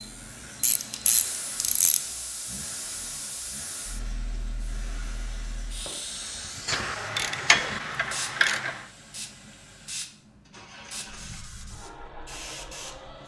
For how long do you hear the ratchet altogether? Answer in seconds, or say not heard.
4 s.